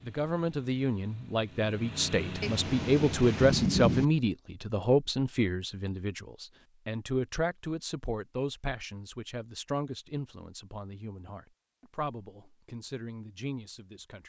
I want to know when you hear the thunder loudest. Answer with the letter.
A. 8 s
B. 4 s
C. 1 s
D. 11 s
B.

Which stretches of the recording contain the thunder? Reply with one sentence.
The thunder can be heard from 2.4 to 4.0 s.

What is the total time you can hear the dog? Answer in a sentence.
You can't hear the dog here.